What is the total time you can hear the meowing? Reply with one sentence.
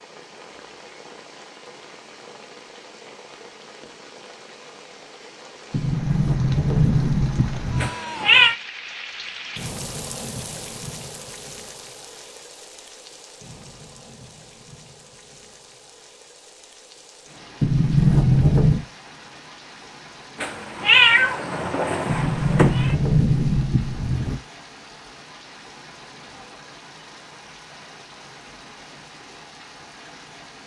You can hear the meowing for 3 seconds altogether.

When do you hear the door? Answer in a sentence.
The door can be heard from 5.7 to 7.9 s, from 17.6 to 18.9 s and from 22.1 to 24.4 s.